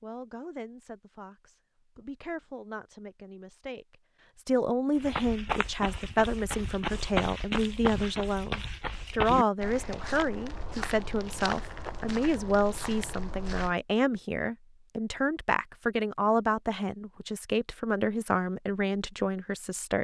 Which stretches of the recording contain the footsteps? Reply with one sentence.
The footsteps can be heard from 5.0 to 13.8 s.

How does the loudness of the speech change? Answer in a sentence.
The loudness of the speech goes up.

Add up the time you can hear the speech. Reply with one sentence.
You can hear the speech for 20 seconds altogether.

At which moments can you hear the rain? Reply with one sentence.
The rain can't be heard in this clip.